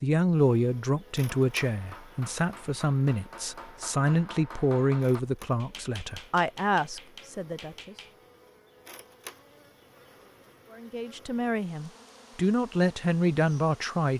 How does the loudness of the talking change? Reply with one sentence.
The loudness of the talking goes down, then up.